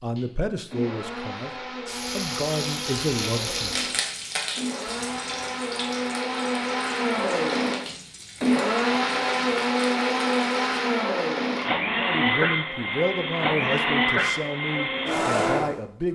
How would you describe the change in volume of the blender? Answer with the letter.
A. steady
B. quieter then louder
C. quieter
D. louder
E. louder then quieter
D.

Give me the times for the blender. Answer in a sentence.
The blender can be heard from 0.0 to 15.8 s.